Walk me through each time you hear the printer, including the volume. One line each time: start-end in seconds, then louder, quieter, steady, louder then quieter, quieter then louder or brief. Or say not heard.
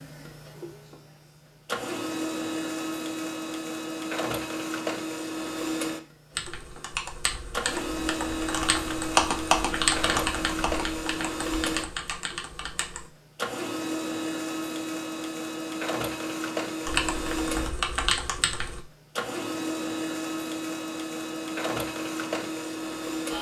0.0-23.3 steady.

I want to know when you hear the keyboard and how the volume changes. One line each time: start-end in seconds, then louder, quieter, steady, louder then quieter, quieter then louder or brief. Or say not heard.
6.3-13.1 louder then quieter
16.9-18.8 brief.